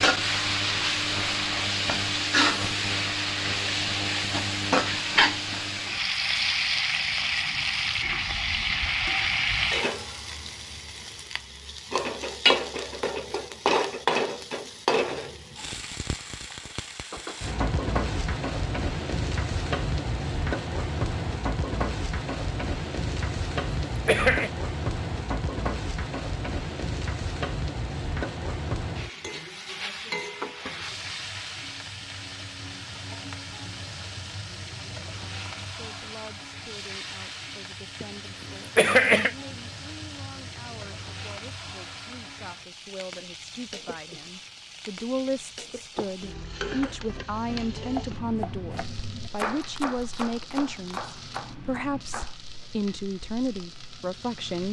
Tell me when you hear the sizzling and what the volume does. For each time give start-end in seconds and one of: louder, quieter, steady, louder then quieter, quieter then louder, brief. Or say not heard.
0.0-54.6 quieter.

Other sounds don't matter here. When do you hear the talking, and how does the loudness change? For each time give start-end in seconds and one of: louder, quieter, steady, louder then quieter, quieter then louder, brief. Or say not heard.
35.8-54.6 louder.